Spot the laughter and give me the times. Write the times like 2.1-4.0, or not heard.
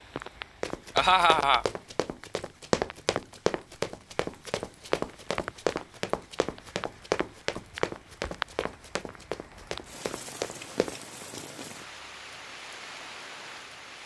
0.9-1.6.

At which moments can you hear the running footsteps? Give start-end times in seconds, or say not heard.
0.6-10.9.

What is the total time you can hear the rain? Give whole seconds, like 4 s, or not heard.
14 s.